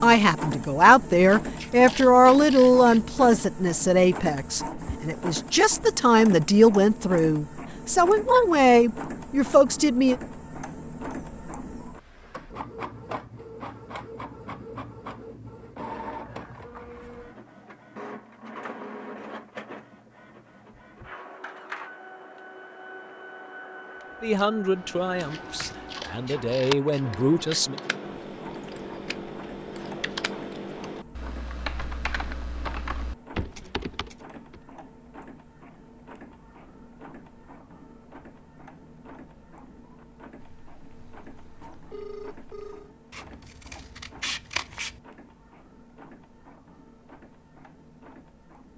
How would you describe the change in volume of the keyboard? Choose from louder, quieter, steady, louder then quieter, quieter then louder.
louder.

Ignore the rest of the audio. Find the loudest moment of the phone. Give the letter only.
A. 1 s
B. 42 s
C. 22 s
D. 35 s
B.